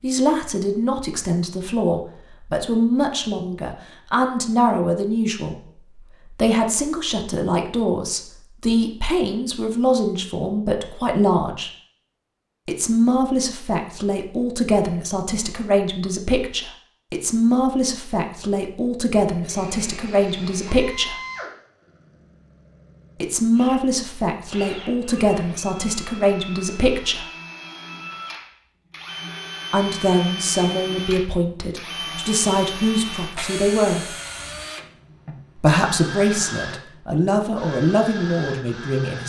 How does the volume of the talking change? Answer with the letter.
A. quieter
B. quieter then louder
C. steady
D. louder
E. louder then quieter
C.